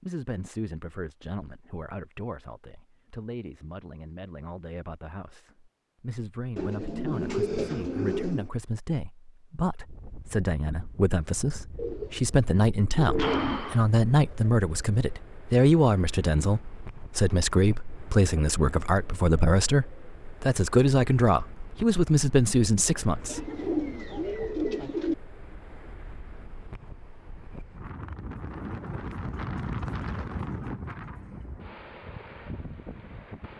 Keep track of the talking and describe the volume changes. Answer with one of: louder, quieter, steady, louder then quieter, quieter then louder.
louder.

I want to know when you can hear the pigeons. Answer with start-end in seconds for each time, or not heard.
6.5-8.5, 11.8-13.8, 23.2-25.1.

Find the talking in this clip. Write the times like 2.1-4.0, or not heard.
0.0-23.4.